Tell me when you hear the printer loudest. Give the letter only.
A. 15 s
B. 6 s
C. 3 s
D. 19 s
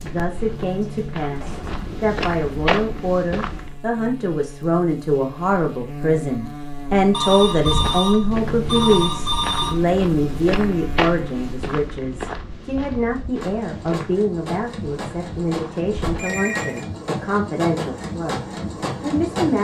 D.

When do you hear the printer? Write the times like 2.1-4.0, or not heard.
13.1-19.5.